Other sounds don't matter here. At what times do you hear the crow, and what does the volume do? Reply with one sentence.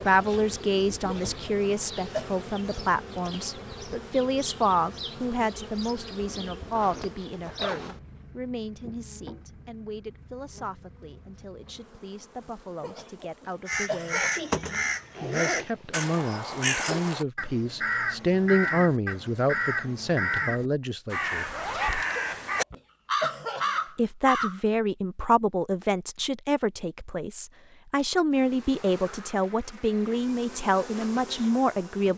You can hear the crow from 13.7 to 24.6 s, at a steady volume.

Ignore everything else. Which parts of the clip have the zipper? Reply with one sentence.
You can hear the zipper from 6.7 to 8.0 s, from 15.2 to 16.1 s and from 21.4 to 22.1 s.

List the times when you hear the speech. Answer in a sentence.
The speech can be heard from 0.0 to 14.2 s, from 15.2 to 21.4 s and from 23.9 to 32.1 s.